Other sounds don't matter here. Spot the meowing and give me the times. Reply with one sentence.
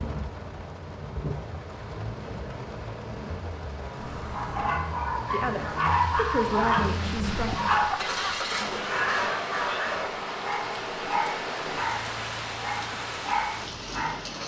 You can hear the meowing from 4.0 to 4.8 s.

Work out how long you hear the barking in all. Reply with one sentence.
The barking can be heard for 10 seconds in total.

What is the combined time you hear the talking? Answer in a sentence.
The talking can be heard for 2 seconds in total.